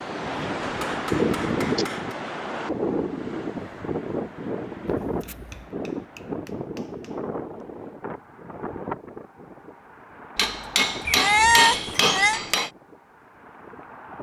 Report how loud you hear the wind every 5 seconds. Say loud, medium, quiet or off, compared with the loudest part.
loud, medium, quiet.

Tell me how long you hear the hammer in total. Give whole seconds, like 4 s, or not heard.
6 s.